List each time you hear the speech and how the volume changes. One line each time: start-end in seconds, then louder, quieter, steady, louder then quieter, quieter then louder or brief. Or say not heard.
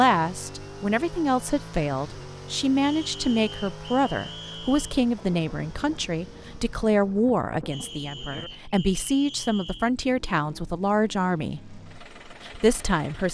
0.0-13.2 steady.